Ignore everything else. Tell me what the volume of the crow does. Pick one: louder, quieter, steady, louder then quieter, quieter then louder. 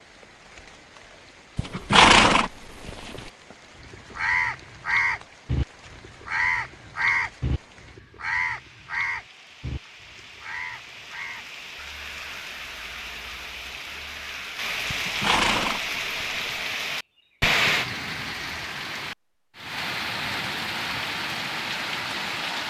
quieter.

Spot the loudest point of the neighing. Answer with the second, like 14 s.
2 s.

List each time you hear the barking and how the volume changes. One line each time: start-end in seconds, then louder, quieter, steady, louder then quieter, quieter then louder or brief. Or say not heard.
not heard.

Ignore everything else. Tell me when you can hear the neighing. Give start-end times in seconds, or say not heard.
1.6-3.2, 14.9-16.6.